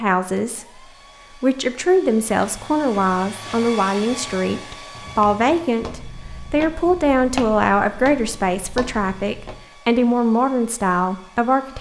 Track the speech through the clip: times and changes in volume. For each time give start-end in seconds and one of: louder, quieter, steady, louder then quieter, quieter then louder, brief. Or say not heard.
0.0-11.7 steady.